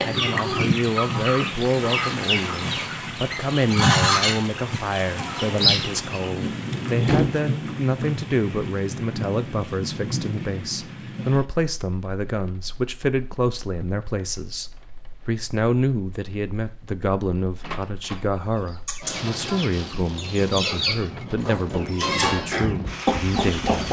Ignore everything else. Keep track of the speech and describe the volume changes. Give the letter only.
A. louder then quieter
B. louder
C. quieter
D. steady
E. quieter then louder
D.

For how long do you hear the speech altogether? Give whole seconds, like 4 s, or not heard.
24 s.